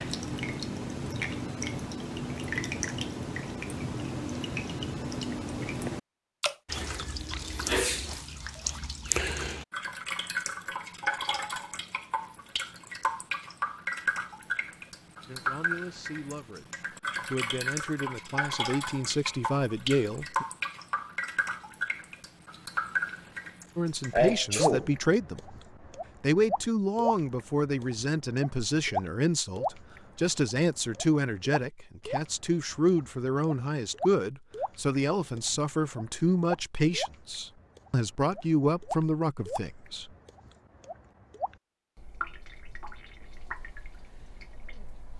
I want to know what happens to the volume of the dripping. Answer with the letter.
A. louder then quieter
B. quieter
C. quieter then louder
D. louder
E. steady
B.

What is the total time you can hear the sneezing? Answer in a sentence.
The sneezing can be heard for 2 seconds in total.